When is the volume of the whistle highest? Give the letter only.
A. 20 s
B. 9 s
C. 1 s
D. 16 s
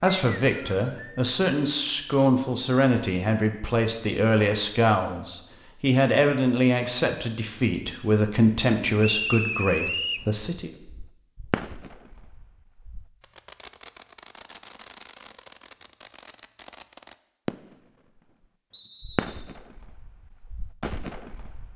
B.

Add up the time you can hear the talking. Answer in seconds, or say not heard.
11 s.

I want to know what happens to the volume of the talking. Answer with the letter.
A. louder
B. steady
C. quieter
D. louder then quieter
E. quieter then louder
B.